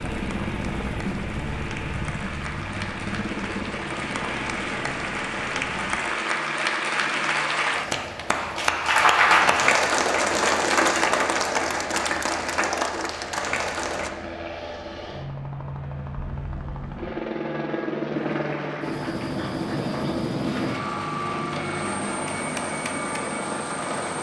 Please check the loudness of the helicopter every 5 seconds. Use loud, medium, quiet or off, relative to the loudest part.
loud, medium, medium, loud, loud.